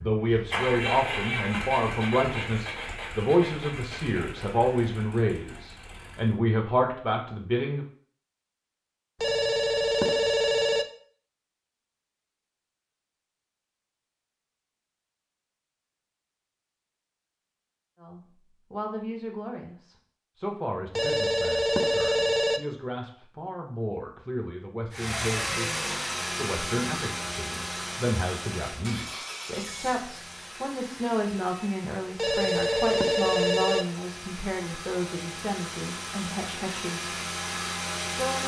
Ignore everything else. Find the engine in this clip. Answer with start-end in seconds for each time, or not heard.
0.0-6.4, 24.9-38.4.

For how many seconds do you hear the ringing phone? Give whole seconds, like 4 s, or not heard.
5 s.